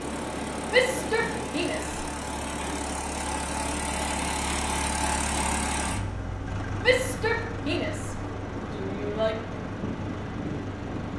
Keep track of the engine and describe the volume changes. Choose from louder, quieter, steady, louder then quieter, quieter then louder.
louder then quieter.